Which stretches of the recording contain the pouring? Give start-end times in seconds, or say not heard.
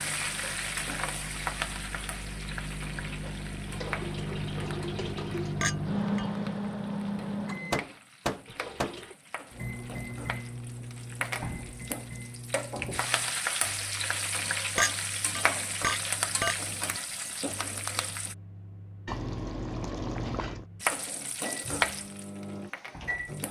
3.6-5.7, 8.4-9.2, 19.1-20.6.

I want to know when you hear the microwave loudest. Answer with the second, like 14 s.
6 s.